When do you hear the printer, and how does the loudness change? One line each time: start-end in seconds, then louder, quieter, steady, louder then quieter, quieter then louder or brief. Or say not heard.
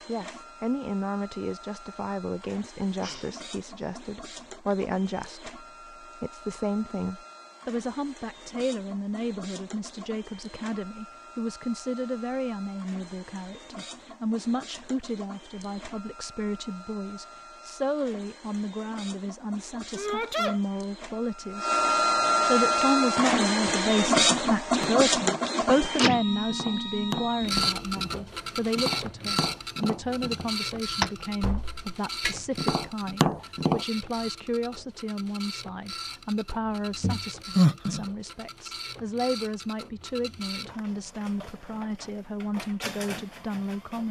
0.0-44.0 louder then quieter.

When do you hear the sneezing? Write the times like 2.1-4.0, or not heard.
2.8-3.3, 19.9-20.6, 37.0-38.0.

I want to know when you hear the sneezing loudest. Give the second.
38 s.